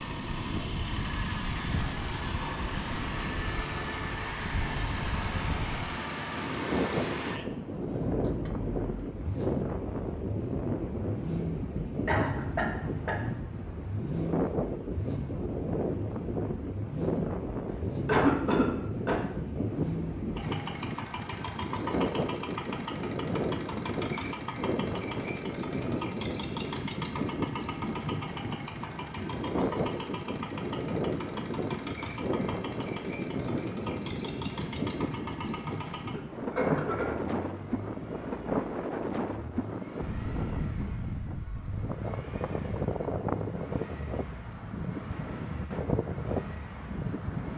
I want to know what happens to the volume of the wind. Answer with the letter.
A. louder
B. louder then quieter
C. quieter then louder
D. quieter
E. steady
E.